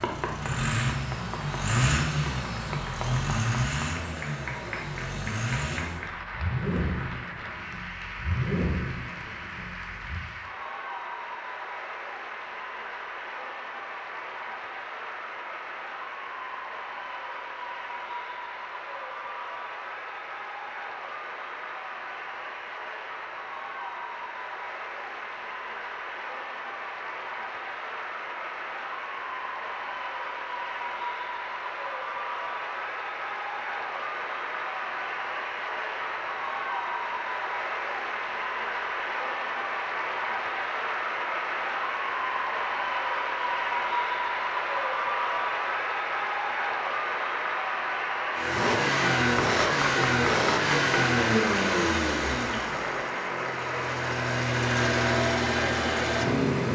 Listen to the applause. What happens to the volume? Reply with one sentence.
The volume of the applause goes up.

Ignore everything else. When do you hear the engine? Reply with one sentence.
You can hear the engine from 0.0 to 10.2 s and from 48.4 to 56.6 s.